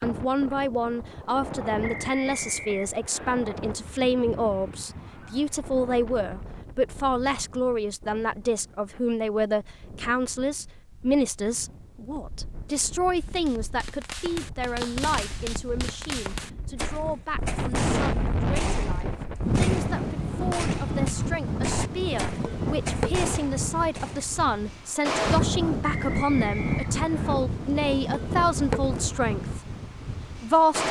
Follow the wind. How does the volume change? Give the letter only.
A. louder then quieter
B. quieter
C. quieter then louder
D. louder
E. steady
C.